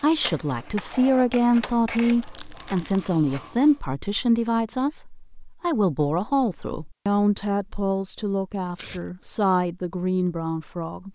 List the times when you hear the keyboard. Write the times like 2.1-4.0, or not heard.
not heard.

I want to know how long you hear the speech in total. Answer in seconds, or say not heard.
11 s.